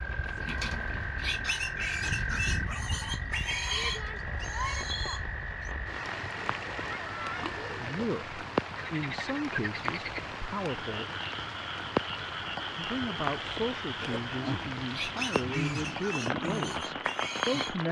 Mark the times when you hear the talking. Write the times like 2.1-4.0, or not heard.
7.6-11.1, 12.8-17.8.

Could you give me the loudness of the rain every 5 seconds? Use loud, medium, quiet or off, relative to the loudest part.
medium, loud, loud, loud.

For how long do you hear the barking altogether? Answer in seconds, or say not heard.
not heard.